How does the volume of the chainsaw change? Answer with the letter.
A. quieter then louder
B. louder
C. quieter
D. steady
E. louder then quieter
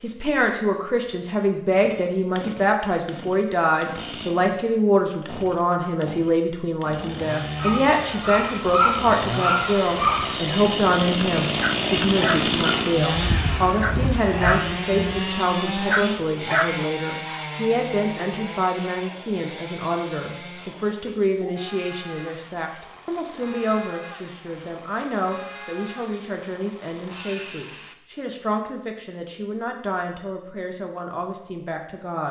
E.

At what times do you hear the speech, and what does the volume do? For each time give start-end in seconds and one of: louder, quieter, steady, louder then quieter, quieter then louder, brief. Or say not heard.
0.0-32.2 quieter.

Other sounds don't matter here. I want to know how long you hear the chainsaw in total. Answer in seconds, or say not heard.
26 s.